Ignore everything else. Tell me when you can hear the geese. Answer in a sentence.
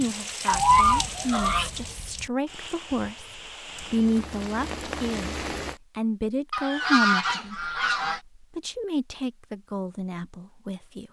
You can hear the geese from 0.5 to 1.7 s and from 6.5 to 8.2 s.